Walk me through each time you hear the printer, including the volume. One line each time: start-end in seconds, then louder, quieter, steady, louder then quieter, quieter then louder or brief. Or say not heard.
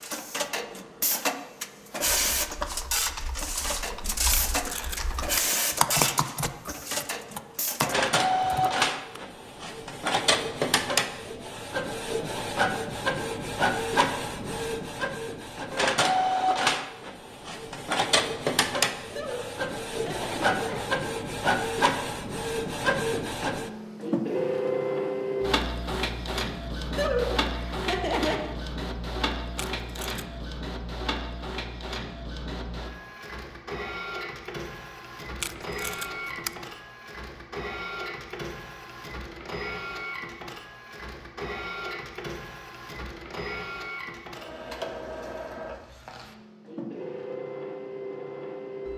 0.0-48.9 quieter.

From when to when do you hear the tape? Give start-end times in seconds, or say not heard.
4.3-5.5, 29.6-30.2, 35.4-36.6.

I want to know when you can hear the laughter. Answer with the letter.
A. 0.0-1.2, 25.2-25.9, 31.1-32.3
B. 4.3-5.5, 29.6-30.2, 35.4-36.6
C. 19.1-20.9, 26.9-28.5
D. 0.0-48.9
C.